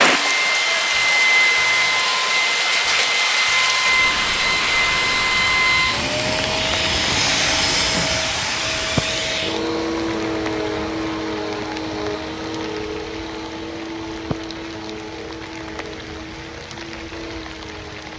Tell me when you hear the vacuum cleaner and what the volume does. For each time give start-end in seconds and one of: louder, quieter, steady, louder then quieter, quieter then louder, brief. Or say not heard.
0.0-18.1 quieter.